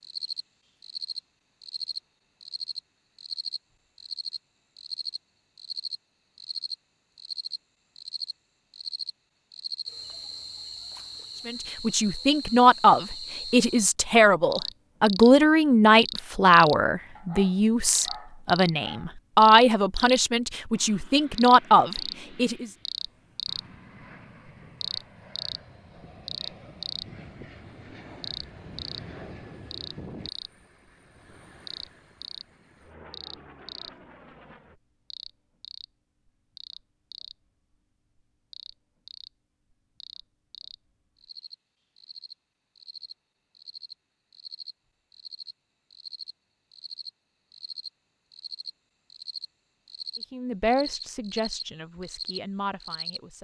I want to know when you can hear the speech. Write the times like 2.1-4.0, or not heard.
11.4-22.7, 50.3-53.4.